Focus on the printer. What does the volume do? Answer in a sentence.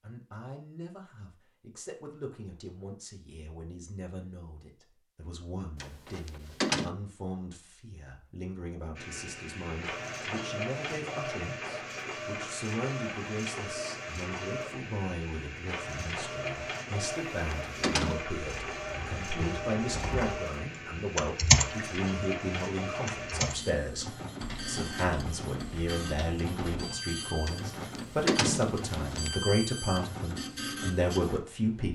The volume of the printer stays about the same.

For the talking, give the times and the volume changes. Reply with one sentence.
The talking can be heard from 0.0 to 31.9 s, getting louder.